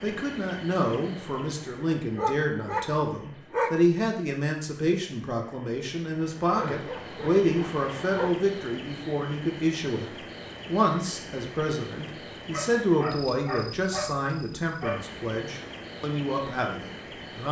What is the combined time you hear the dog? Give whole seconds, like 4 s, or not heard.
6 s.